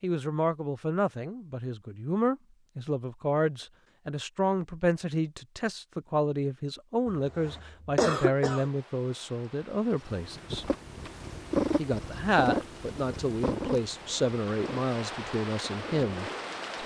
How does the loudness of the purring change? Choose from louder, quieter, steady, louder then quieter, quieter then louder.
louder then quieter.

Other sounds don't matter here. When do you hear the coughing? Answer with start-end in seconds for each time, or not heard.
7.0-8.7.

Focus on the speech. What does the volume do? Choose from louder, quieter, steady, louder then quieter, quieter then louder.
steady.